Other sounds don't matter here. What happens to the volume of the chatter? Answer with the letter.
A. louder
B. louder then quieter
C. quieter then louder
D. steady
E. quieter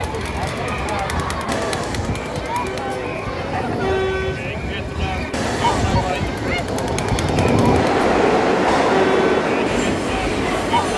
D.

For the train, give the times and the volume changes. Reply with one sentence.
You can hear the train from 0.0 to 10.9 s, getting louder.